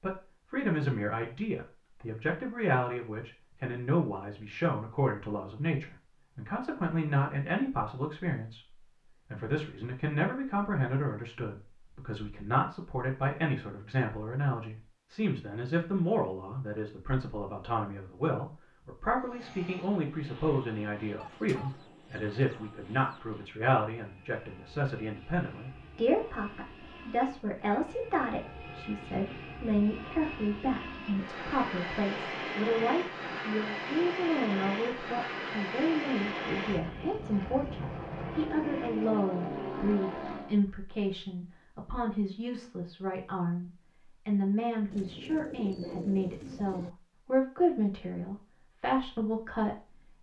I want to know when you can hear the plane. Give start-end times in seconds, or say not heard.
19.1-40.5.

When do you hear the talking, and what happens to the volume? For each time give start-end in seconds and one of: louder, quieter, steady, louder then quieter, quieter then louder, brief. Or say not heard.
0.0-50.1 steady.